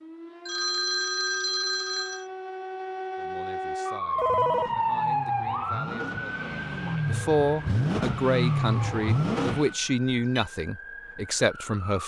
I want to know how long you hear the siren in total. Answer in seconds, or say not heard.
12 s.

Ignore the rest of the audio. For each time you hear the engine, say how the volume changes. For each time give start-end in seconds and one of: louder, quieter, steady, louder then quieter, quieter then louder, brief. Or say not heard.
4.2-9.8 louder.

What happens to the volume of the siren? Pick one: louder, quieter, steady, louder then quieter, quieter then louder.
louder then quieter.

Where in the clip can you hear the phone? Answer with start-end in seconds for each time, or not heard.
0.5-2.2, 4.2-4.7, 9.8-10.4.